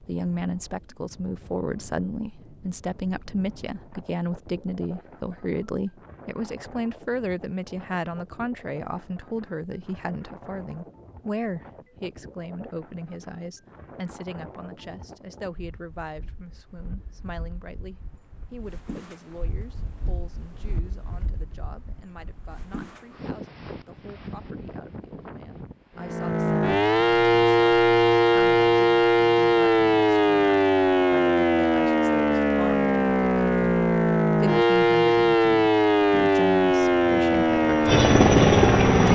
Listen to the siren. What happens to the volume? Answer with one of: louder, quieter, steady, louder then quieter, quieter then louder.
steady.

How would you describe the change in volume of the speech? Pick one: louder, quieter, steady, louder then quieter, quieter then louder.
quieter then louder.